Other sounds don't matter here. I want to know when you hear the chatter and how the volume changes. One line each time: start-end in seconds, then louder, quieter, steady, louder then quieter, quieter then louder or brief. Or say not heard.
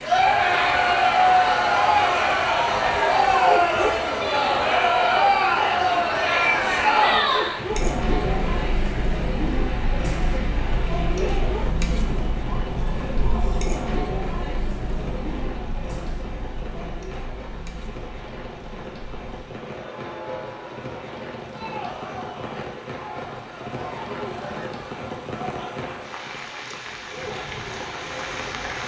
0.0-28.8 quieter.